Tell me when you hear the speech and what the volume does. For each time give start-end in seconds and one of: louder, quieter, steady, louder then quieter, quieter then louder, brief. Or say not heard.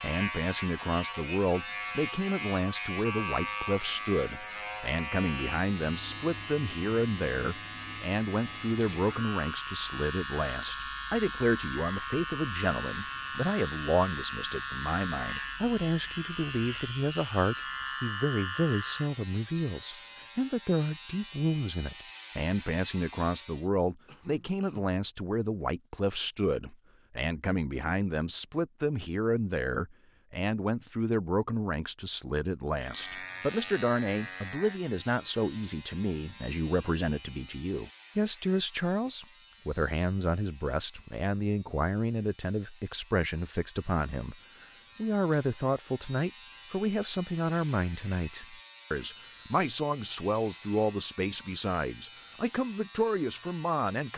0.0-54.1 steady.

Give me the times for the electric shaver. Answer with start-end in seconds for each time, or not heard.
0.0-23.7, 32.8-54.1.